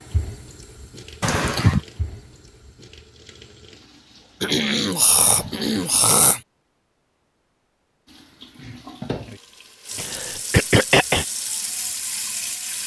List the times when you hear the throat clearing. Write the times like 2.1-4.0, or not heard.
1.2-1.8, 4.4-6.4, 9.9-11.2.